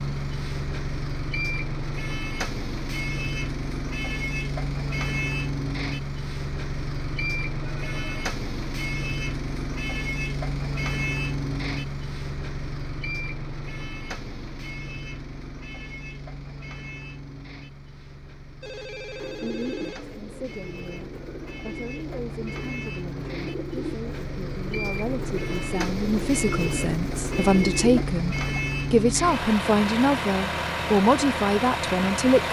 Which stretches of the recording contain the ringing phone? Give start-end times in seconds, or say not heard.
7.6-8.0, 18.6-20.1.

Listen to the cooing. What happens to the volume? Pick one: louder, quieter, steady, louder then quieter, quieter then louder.
louder.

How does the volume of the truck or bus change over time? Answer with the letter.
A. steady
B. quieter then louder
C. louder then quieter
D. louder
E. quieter
B.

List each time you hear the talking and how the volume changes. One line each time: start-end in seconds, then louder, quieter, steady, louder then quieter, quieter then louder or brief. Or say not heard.
19.4-32.4 louder.